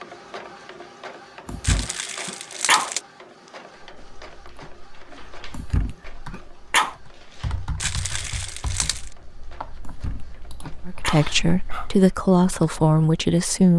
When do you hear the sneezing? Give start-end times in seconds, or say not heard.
1.4-2.9, 5.5-7.0, 9.8-11.9.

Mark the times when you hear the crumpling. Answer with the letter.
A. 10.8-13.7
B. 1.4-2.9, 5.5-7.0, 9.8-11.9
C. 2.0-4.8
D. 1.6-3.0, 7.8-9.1
D.